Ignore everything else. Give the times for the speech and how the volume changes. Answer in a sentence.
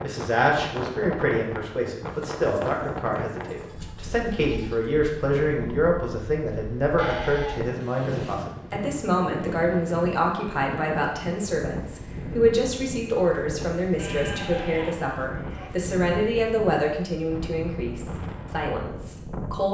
You can hear the speech from 0.0 to 19.6 s, at a steady volume.